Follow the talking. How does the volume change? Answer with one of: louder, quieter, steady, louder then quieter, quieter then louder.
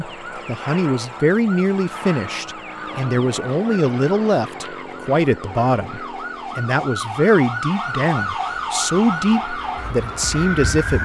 steady.